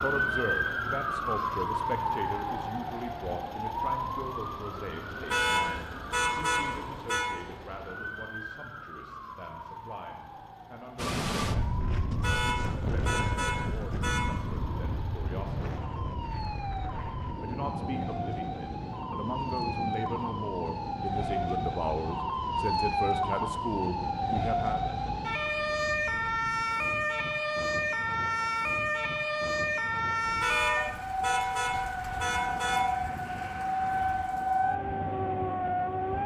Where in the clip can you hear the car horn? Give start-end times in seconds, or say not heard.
5.3-7.2, 12.2-14.3, 30.4-32.9.